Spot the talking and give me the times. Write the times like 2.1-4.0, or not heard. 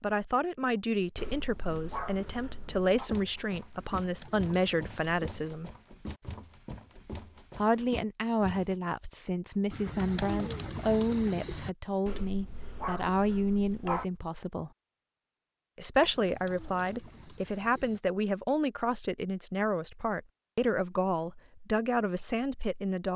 0.0-5.7, 7.5-14.7, 15.8-23.1.